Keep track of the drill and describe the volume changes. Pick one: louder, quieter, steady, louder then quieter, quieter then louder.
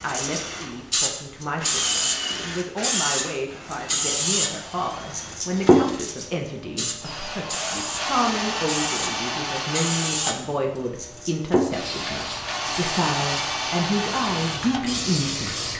quieter then louder.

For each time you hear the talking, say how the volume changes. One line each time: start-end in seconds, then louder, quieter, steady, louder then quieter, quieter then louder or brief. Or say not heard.
0.0-15.7 louder.